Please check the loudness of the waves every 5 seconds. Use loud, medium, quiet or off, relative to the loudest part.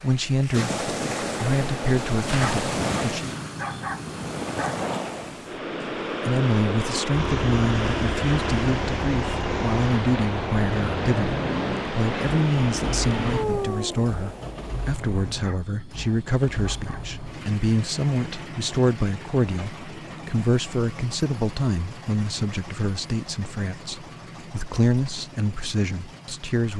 loud, loud, loud, off, off, off.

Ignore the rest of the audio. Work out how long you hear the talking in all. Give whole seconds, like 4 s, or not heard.
24 s.